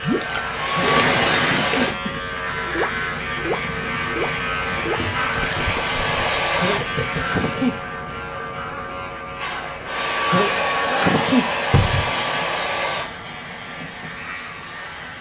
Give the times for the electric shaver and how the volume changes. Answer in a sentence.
You can hear the electric shaver from 0.0 to 15.1 s, getting quieter.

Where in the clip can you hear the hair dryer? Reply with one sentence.
You can hear the hair dryer from 0.0 to 1.9 s, from 3.5 to 6.8 s and from 9.3 to 15.1 s.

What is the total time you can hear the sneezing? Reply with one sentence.
You can hear the sneezing for 4 seconds altogether.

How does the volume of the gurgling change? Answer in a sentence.
The loudness of the gurgling goes down.